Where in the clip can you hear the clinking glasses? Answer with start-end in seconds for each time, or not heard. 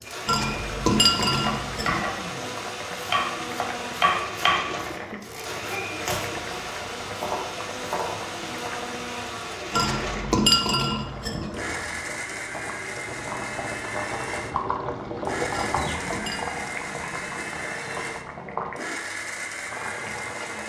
0.2-2.0, 9.7-11.5, 15.5-16.4.